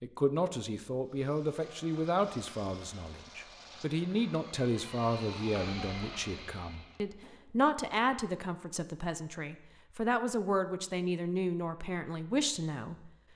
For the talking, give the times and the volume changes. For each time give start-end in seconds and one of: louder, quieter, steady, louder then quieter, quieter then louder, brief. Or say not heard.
0.0-13.2 steady.